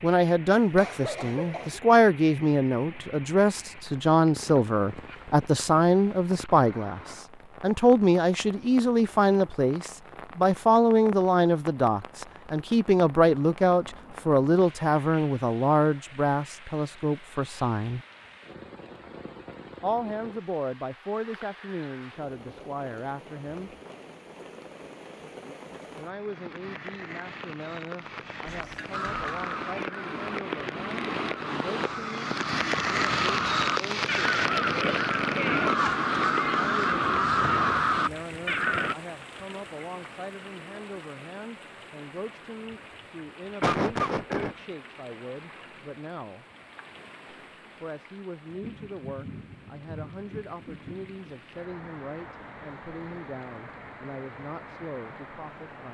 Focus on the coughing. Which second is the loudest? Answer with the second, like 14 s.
44 s.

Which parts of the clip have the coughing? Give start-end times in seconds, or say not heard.
0.6-1.8, 28.4-29.5, 43.6-44.5.